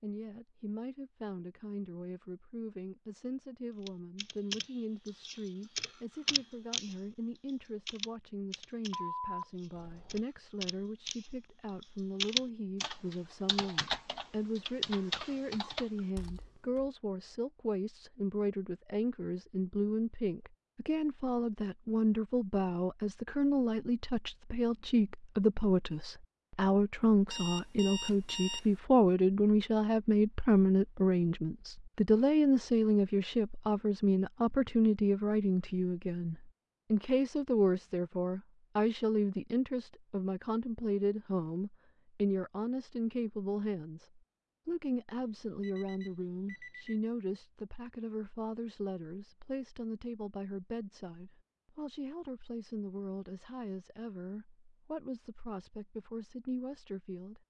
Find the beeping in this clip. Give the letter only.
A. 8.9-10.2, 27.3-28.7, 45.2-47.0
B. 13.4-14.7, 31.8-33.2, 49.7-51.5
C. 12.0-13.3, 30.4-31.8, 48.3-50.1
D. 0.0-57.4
A.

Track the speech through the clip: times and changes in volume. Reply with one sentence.
The speech can be heard from 0.0 to 57.4 s, getting louder then quieter.